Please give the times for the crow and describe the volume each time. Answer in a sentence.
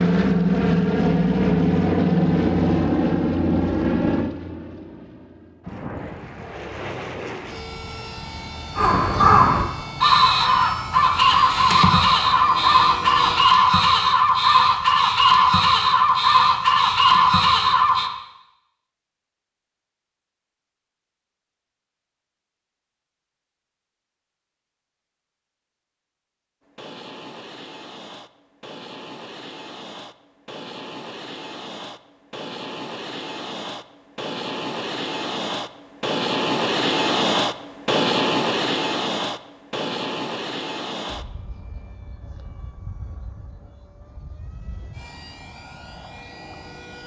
You can hear the crow from 8.8 to 18.1 s, at a steady volume.